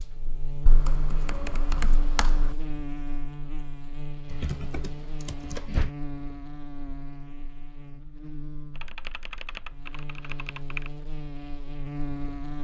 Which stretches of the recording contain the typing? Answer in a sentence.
You can hear the typing from 0.7 to 2.5 s, from 4.2 to 6.0 s and from 8.8 to 10.9 s.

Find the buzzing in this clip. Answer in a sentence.
You can hear the buzzing from 0.0 to 12.5 s.